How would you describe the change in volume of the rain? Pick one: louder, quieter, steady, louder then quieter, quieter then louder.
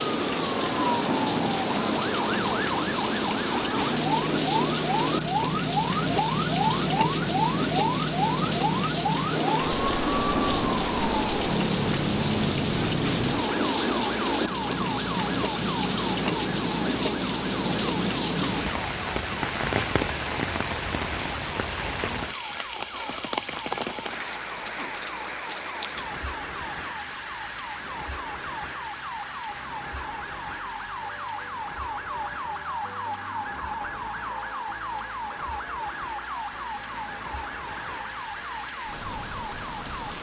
quieter.